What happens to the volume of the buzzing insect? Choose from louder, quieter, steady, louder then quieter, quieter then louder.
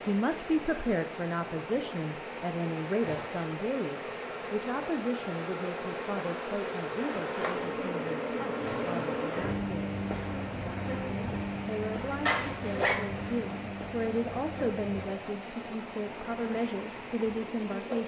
louder then quieter.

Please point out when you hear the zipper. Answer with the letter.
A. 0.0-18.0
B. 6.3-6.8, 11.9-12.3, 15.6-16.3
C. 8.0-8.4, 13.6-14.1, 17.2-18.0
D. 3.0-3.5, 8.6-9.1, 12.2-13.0
D.